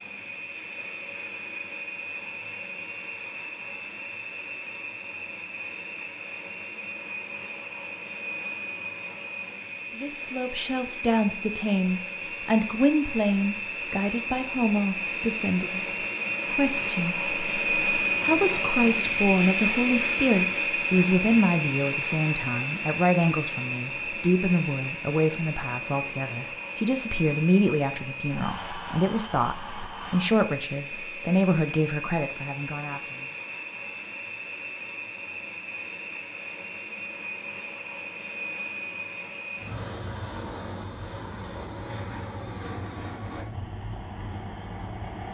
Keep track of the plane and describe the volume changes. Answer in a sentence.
The volume of the plane goes up, then down.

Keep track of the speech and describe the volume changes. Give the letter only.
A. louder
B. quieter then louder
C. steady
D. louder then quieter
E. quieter
C.